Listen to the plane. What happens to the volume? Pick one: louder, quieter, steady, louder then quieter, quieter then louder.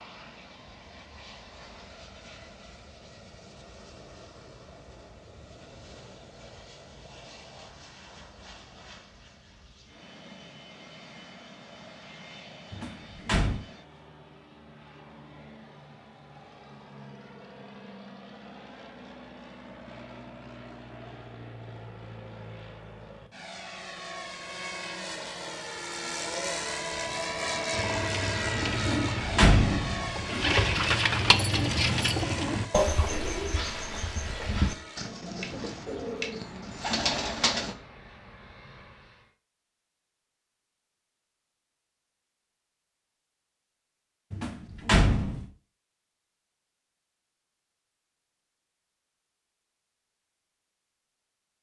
louder then quieter.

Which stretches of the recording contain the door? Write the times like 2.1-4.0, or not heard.
12.7-13.7, 28.8-30.4, 44.3-45.5.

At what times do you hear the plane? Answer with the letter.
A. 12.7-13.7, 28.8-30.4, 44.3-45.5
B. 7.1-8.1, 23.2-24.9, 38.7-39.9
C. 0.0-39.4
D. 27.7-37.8
C.